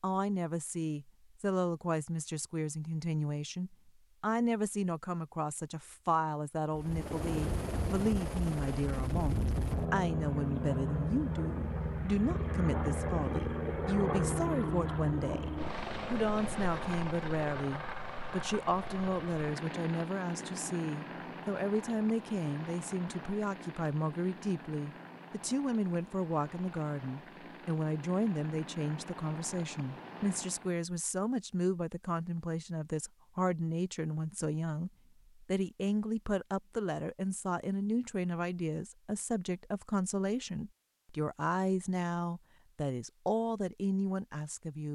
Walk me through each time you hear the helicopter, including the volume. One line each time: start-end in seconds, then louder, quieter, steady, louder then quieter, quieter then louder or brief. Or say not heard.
6.7-30.8 quieter.